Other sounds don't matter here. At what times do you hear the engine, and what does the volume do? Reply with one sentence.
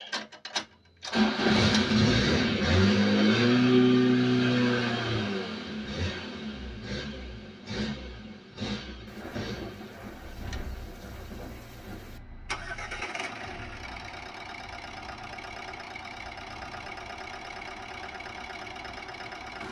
You can hear the engine from 0.0 to 19.6 s, getting quieter.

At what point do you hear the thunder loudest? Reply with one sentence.
The loudest moment of the thunder is at 10 seconds.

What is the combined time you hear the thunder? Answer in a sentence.
The thunder can be heard for 3 seconds in total.